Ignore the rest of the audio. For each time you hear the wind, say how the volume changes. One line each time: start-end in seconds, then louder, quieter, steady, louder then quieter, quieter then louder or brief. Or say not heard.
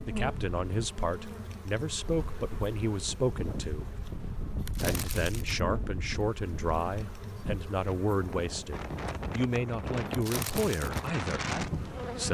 0.0-12.2 louder.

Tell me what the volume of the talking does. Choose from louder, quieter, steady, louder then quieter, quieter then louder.
steady.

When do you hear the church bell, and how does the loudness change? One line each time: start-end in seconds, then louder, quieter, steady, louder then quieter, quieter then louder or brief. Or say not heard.
not heard.